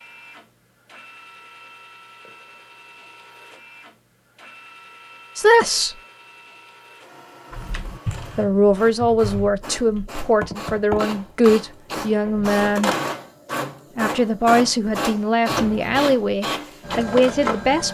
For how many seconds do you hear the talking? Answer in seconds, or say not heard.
9 s.